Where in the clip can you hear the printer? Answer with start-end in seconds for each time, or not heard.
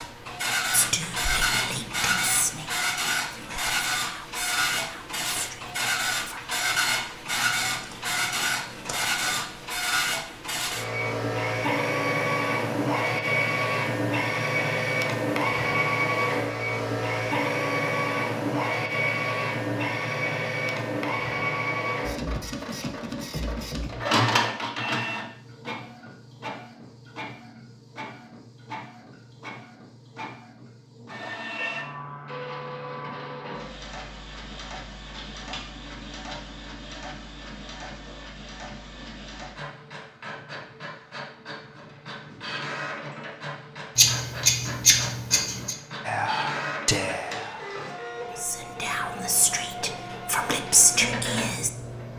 0.0-52.1.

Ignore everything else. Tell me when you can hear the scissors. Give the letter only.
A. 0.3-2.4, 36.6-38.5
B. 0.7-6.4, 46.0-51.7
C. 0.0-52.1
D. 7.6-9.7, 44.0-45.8
D.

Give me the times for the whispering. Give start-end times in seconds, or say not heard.
0.7-6.4, 46.0-51.7.